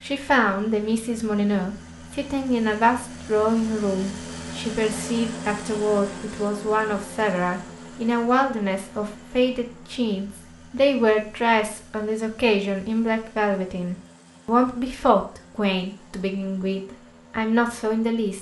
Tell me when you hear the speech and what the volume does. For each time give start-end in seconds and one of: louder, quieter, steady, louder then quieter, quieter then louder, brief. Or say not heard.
0.0-18.3 steady.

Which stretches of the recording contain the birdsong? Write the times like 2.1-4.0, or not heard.
not heard.